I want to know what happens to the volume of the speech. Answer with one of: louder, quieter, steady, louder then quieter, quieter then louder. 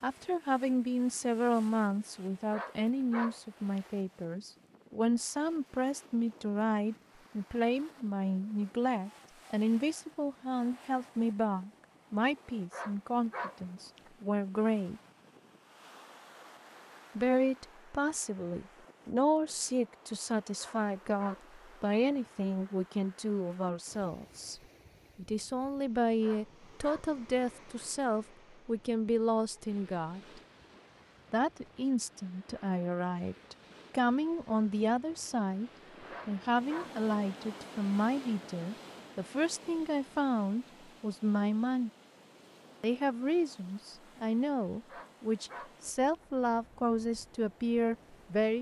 steady.